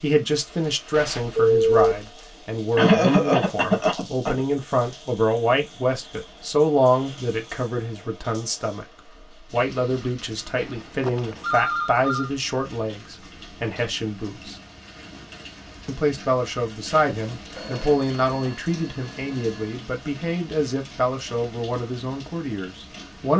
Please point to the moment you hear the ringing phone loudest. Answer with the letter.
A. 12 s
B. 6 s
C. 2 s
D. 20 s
C.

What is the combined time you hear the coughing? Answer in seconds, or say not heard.
2 s.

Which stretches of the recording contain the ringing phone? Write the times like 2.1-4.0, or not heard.
0.9-2.0, 10.6-12.3, 17.6-19.8.